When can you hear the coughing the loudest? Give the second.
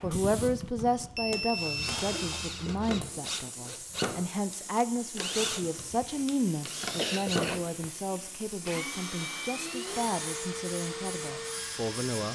7 s.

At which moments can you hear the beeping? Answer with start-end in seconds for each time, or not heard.
1.1-2.0.